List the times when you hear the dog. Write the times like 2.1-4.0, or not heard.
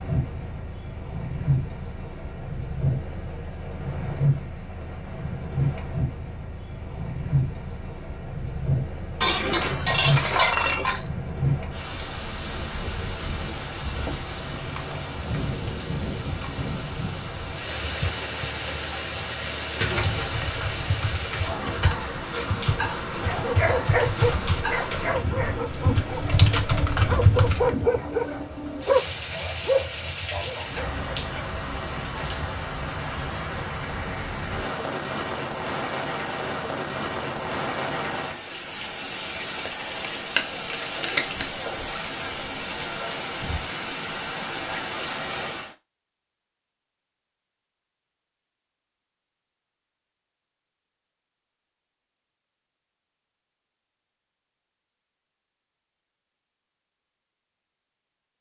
23.2-31.4.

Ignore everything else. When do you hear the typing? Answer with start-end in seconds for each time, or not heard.
20.1-27.7.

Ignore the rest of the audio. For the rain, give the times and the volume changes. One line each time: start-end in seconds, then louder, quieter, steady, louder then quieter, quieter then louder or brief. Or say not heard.
0.0-45.8 steady.